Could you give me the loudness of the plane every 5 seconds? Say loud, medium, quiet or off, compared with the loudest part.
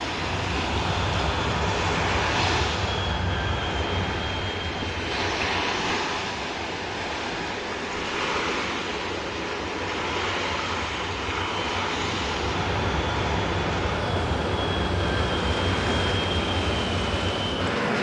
loud, quiet, loud, loud.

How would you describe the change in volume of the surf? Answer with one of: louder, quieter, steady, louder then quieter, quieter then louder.
steady.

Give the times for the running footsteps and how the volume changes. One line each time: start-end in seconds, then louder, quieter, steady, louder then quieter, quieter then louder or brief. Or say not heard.
not heard.